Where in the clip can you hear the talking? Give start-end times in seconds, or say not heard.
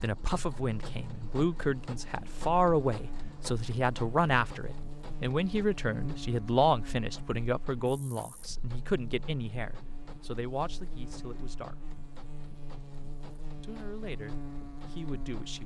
0.0-11.8, 13.6-15.6.